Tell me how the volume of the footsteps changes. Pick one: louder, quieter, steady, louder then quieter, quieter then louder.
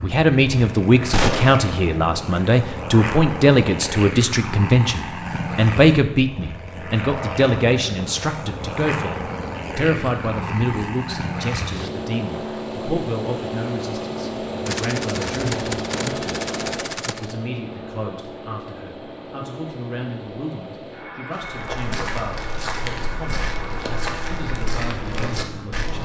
steady.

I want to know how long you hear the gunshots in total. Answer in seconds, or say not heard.
3 s.